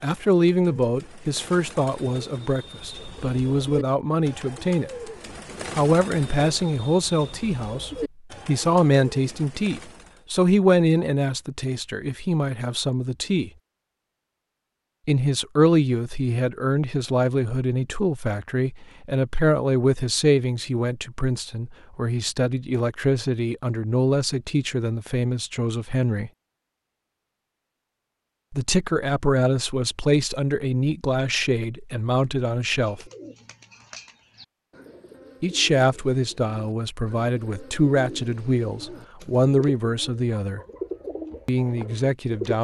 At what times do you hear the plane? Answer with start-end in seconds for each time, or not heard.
not heard.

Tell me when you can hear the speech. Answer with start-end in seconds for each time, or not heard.
0.0-5.1, 5.8-13.5, 15.1-26.3, 28.5-33.0, 35.4-40.6, 41.5-42.5.